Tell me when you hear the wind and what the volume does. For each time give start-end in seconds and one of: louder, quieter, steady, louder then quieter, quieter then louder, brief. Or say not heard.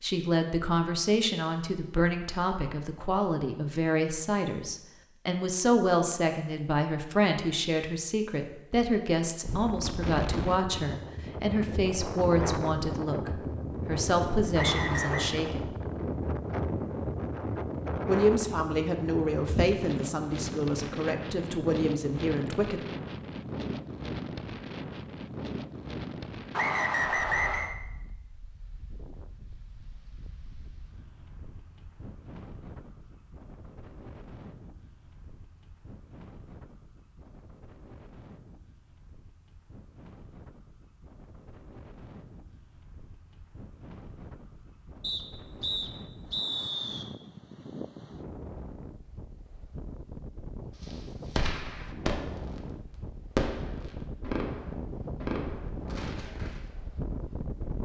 9.4-57.8 quieter then louder.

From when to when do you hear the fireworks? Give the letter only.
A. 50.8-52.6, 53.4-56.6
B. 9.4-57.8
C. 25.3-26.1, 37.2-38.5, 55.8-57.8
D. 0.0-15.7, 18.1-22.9
A.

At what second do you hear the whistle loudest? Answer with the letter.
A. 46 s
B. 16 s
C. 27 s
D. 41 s
C.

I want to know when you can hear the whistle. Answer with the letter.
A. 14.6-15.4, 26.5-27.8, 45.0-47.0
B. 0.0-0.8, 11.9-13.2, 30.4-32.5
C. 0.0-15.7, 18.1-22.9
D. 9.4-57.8
A.